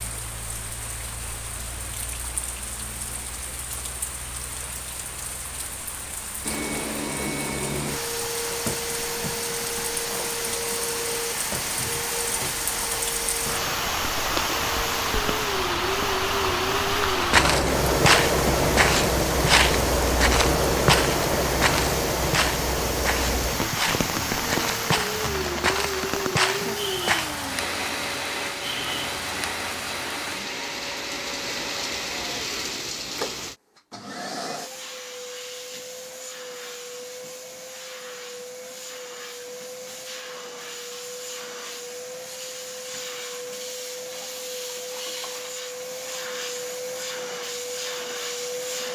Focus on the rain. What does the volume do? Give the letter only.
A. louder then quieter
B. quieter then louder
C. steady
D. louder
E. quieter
A.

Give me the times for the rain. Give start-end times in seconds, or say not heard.
0.0-33.5.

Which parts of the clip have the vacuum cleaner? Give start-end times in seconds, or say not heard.
6.4-48.8.